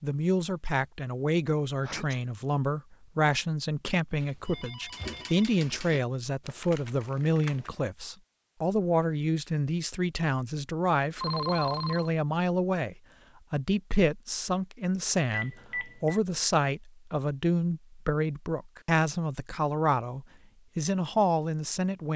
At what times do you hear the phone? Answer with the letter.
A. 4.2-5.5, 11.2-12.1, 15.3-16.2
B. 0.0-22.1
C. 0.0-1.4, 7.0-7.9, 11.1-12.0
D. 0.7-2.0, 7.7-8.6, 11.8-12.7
A.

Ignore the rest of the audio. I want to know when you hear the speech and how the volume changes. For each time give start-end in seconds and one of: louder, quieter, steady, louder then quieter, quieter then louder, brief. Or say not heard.
0.0-22.1 steady.